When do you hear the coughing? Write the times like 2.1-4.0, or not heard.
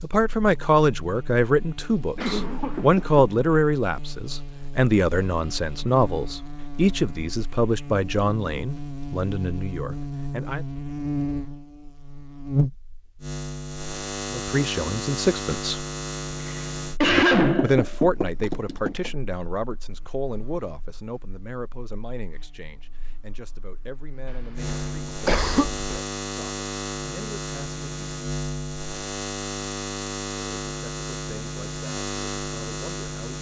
2.1-3.2, 16.4-17.9, 24.2-25.8.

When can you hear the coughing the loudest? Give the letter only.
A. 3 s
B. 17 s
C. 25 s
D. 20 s
B.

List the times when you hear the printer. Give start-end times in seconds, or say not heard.
not heard.